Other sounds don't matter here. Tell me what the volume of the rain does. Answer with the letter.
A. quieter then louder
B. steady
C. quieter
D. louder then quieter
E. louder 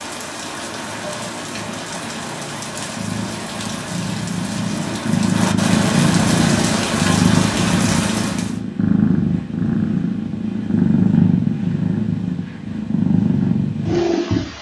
E.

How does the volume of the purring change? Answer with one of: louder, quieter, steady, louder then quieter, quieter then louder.
louder.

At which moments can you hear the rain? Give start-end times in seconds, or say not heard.
0.0-8.6.